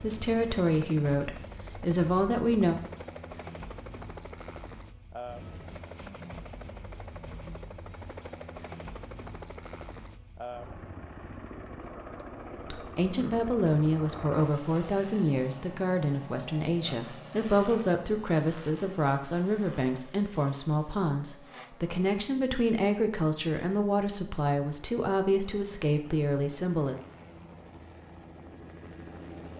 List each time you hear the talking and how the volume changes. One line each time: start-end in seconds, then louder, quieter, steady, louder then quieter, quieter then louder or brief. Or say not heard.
0.0-2.8 brief
12.7-26.9 steady.